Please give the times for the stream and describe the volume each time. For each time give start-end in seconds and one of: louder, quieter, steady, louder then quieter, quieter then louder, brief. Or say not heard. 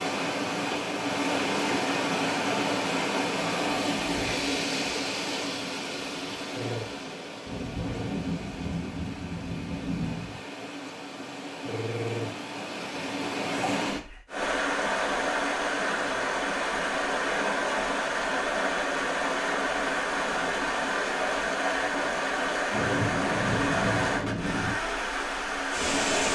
0.0-26.3 quieter then louder.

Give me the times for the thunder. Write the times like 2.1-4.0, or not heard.
7.5-10.4, 22.7-24.8.